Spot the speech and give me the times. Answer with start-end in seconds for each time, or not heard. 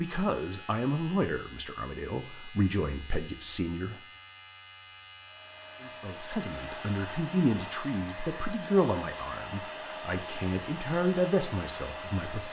0.0-4.0, 5.8-12.4.